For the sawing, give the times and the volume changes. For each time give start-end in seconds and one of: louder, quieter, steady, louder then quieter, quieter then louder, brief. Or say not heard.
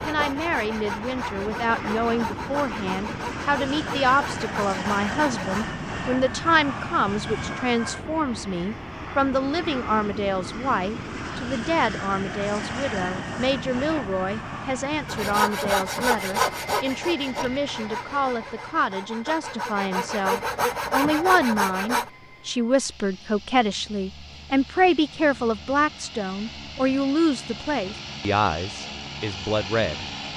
0.0-5.8 steady
15.1-22.1 quieter then louder.